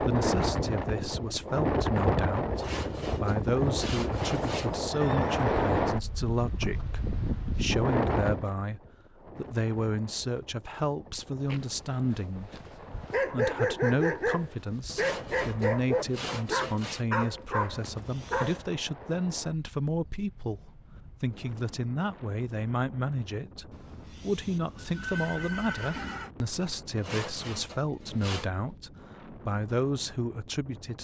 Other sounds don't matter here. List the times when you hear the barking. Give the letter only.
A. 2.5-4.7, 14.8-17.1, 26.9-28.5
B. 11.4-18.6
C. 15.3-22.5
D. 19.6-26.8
B.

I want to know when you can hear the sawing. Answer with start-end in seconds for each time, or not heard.
2.5-4.7, 14.8-17.1, 26.9-28.5.